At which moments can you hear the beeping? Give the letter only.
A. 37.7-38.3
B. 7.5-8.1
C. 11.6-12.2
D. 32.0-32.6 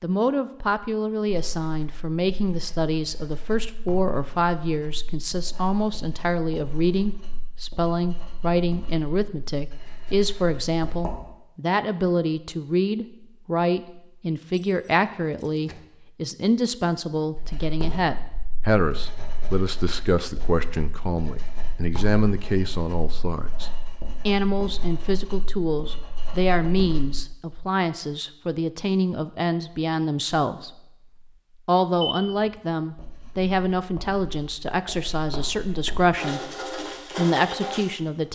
D.